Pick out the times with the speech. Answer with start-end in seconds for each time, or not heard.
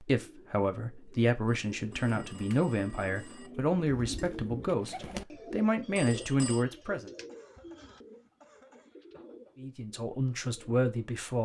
0.0-7.1, 9.6-11.4.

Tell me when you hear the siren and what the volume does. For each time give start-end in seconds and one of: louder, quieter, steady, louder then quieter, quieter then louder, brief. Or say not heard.
not heard.